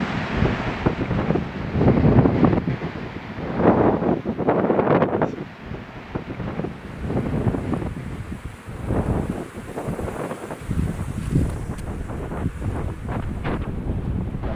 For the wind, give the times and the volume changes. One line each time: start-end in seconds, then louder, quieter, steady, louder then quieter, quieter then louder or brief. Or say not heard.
0.0-14.5 quieter.